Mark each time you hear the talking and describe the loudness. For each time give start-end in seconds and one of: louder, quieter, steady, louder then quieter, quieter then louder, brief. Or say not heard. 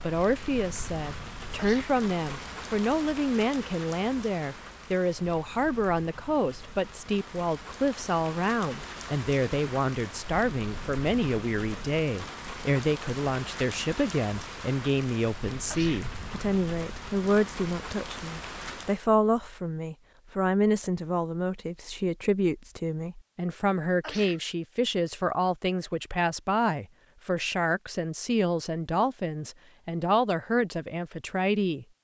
0.0-31.9 steady.